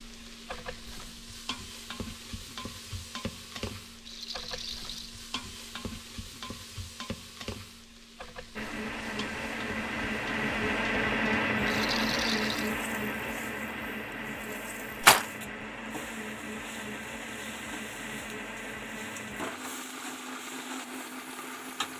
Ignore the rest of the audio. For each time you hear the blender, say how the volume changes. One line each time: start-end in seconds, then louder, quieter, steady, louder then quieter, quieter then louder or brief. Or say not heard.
8.6-21.9 quieter.